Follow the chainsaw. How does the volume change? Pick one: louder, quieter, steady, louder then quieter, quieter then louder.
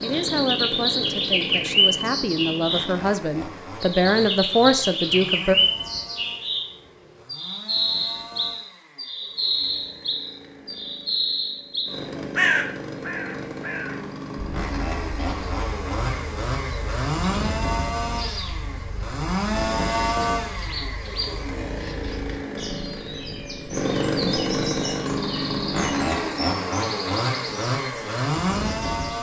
quieter then louder.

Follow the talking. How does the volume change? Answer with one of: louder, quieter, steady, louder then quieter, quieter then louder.
louder.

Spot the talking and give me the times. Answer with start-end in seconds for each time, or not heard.
0.0-5.5.